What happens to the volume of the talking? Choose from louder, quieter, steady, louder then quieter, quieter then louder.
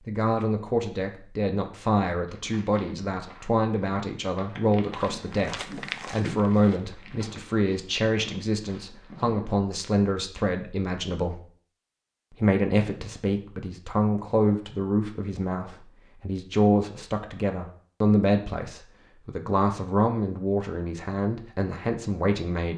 steady.